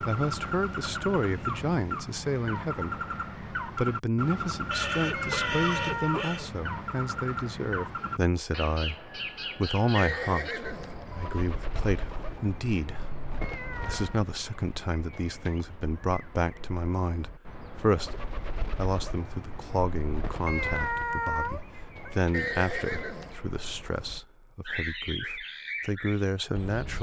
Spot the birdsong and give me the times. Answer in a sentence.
The birdsong can be heard from 0.0 to 26.9 s.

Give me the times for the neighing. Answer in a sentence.
The neighing can be heard from 4.7 to 6.5 s, from 9.9 to 11.5 s and from 22.3 to 23.4 s.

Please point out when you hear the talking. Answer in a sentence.
You can hear the talking from 0.0 to 18.1 s and from 18.8 to 26.9 s.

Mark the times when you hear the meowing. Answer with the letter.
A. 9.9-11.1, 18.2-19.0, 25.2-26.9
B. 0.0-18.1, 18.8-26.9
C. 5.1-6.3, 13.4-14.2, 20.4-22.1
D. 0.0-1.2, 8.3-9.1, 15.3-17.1
C.